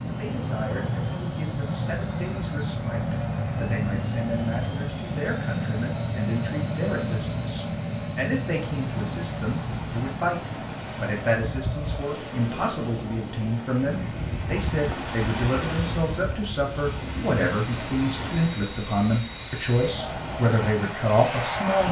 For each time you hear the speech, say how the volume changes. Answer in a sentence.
The speech can be heard from 0.1 to 21.8 s, getting louder.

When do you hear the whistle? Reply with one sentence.
The whistle can't be heard in this clip.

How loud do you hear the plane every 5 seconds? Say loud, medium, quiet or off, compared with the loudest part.
loud, loud, medium, medium, loud.